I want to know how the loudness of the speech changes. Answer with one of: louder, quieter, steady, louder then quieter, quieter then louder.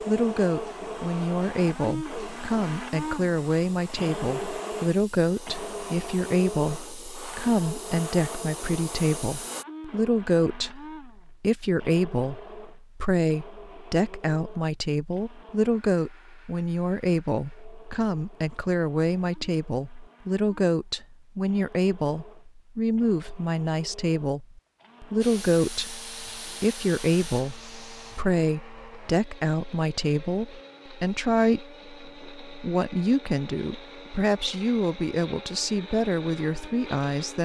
steady.